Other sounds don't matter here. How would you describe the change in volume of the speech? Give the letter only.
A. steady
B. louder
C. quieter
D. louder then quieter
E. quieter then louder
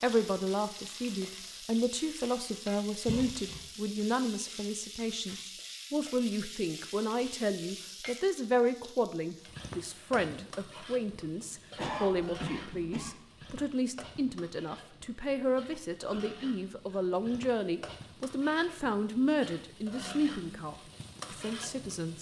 A.